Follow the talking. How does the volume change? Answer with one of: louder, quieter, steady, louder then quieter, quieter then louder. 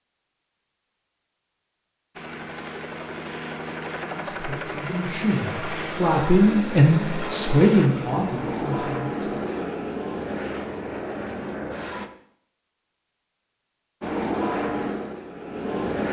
louder then quieter.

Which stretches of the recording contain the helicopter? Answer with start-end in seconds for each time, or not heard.
2.1-12.1, 14.0-16.0.